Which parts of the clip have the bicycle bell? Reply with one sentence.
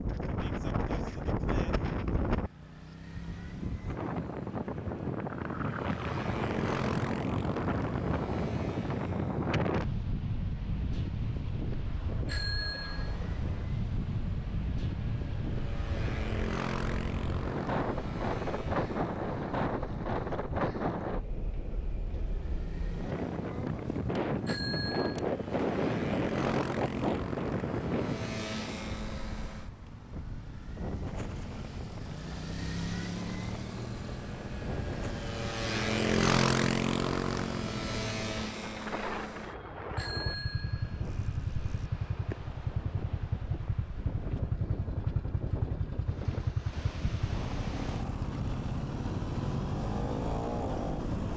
You can hear the bicycle bell from 12.2 to 13.2 s, from 24.4 to 25.2 s and from 40.0 to 41.9 s.